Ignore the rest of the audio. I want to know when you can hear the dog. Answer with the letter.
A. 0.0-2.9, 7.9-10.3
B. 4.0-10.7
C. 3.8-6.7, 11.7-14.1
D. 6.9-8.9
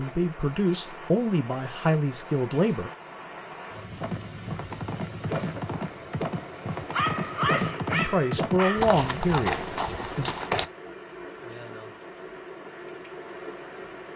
D.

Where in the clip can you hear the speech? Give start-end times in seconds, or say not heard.
0.0-2.9, 7.9-10.3.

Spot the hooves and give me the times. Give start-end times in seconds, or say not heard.
4.0-10.7.